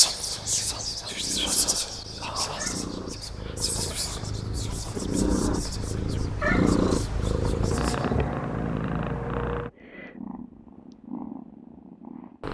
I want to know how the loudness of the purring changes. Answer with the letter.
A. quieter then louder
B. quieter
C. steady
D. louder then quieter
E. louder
D.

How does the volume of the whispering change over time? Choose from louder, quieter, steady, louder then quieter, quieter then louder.
quieter.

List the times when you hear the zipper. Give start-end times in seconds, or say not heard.
not heard.